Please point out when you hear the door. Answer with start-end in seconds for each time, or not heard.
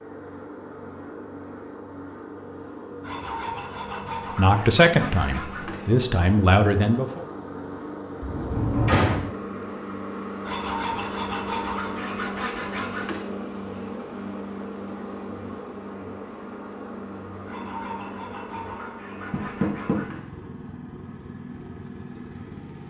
8.2-9.2, 19.3-20.0.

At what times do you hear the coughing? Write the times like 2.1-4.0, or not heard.
not heard.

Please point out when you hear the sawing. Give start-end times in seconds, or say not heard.
3.0-5.9, 10.4-13.3, 17.4-20.2.